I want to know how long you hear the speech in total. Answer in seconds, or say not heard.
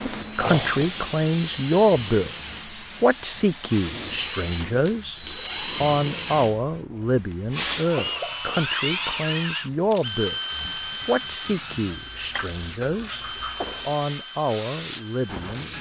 13 s.